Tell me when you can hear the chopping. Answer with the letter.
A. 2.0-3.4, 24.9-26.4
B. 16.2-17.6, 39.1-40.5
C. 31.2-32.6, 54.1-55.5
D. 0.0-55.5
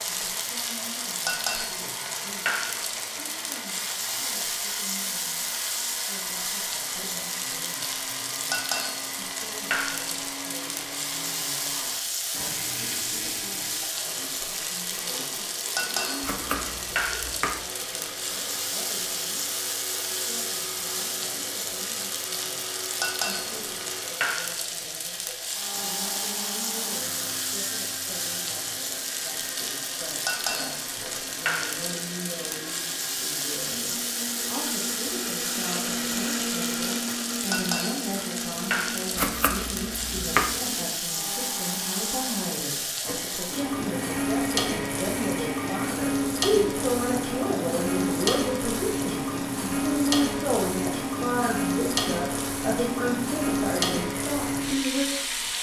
B.